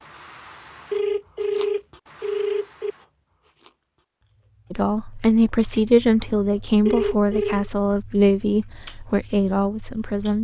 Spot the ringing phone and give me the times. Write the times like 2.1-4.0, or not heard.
0.9-3.0, 6.8-7.7.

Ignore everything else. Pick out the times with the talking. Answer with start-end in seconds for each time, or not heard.
4.7-10.3.